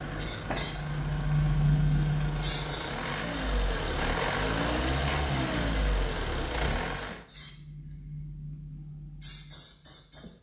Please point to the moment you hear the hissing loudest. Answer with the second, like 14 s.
2 s.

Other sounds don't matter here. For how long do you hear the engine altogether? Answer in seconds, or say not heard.
7 s.